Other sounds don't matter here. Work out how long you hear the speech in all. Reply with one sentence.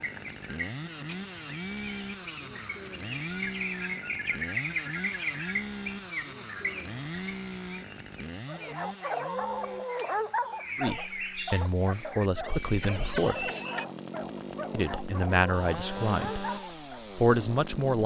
You can hear the speech for 5 seconds altogether.